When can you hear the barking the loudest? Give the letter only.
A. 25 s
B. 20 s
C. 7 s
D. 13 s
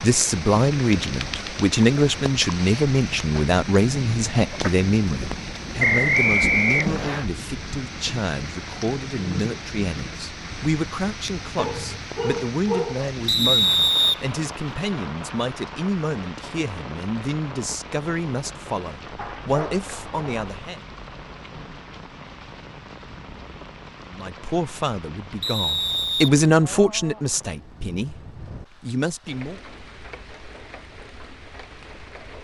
D.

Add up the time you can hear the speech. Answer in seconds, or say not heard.
26 s.